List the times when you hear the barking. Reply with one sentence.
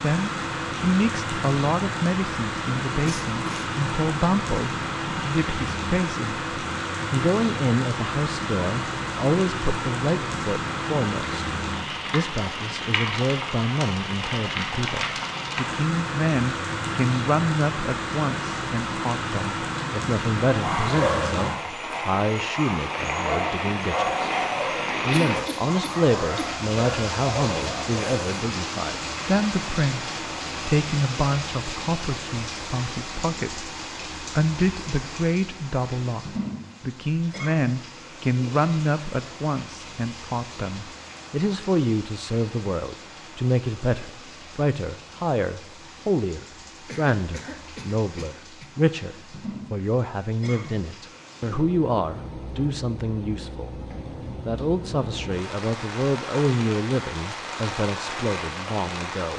You can hear the barking from 20.6 to 28.2 s.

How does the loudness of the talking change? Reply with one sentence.
The loudness of the talking stays about the same.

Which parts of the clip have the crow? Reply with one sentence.
You can't hear the crow here.